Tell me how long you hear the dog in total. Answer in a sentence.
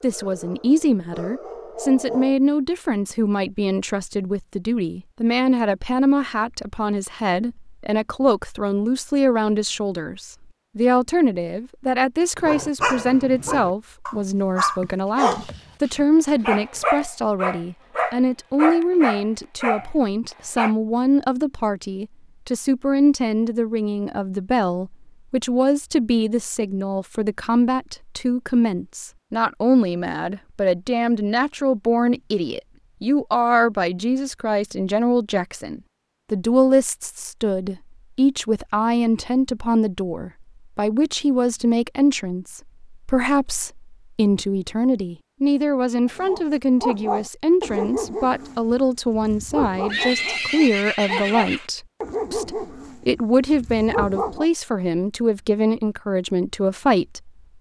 You can hear the dog for 19 seconds altogether.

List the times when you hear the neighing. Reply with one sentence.
You can hear the neighing from 49.9 to 51.7 s.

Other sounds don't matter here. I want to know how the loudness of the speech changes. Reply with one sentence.
The volume of the speech stays about the same.